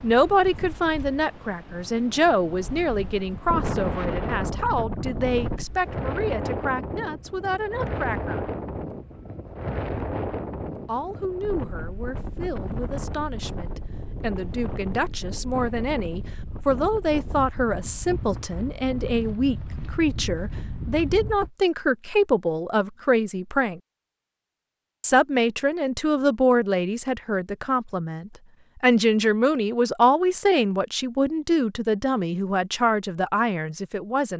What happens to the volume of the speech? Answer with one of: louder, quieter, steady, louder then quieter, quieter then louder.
quieter then louder.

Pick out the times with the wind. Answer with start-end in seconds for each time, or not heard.
0.0-21.5.